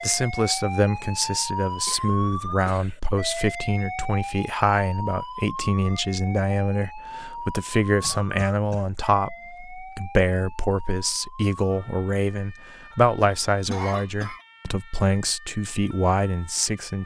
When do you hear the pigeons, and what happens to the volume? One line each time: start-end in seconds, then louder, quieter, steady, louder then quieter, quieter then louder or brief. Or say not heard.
not heard.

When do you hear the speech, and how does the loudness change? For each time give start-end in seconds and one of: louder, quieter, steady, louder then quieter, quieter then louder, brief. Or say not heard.
0.0-17.0 steady.